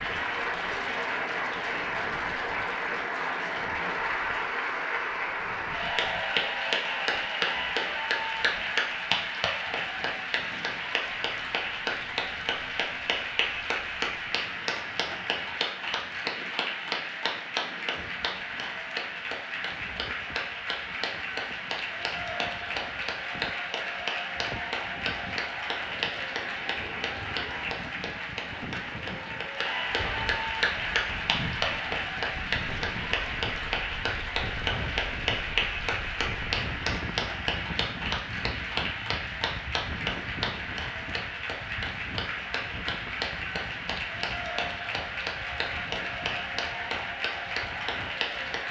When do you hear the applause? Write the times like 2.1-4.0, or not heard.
0.0-48.6.